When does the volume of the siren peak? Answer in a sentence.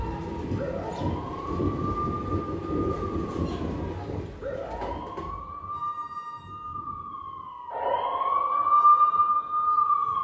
The loudest moment of the siren is at 9 seconds.